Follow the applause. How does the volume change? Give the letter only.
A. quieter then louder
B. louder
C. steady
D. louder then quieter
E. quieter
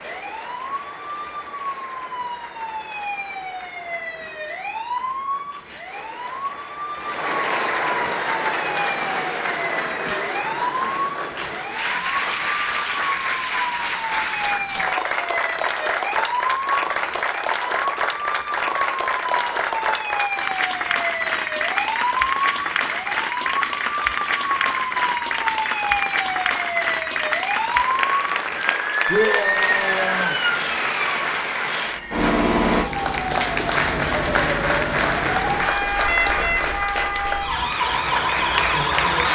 B.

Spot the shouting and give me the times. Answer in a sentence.
You can hear the shouting from 29.1 to 30.4 s.